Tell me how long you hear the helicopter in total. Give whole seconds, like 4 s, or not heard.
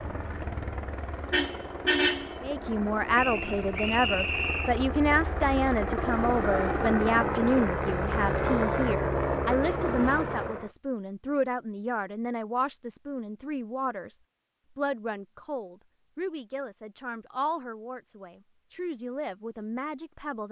11 s.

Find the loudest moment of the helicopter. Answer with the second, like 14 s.
9 s.